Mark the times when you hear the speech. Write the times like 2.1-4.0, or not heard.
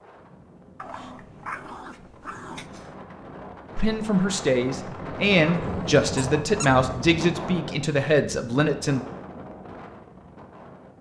3.8-9.1.